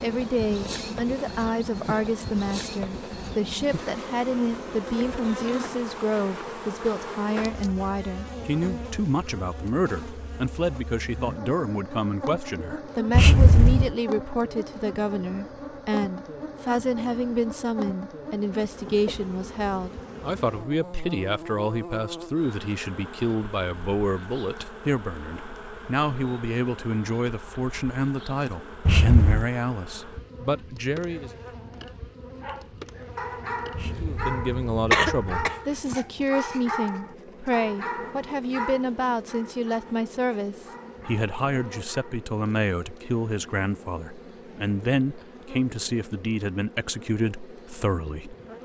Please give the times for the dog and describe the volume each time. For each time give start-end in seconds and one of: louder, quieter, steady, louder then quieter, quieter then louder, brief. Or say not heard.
32.4-42.3 quieter.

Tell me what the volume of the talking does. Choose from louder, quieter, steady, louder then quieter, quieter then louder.
steady.